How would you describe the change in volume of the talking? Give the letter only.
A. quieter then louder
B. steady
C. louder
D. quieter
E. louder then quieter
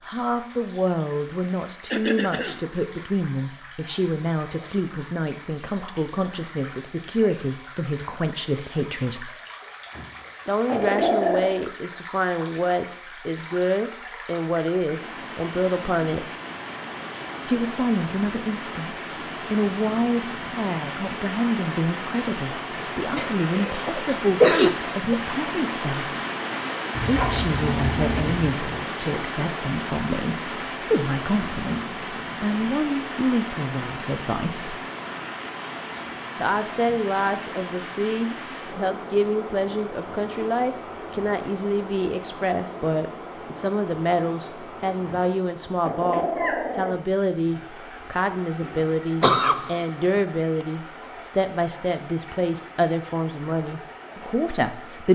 B.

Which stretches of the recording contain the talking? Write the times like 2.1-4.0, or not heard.
0.1-9.3, 10.4-16.3, 17.4-26.1, 27.0-34.8, 36.4-55.1.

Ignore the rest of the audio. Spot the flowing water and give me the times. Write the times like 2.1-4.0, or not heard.
0.0-55.1.